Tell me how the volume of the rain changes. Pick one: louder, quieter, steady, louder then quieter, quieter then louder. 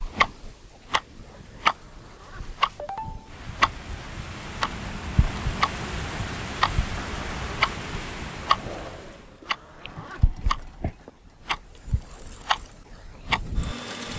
louder.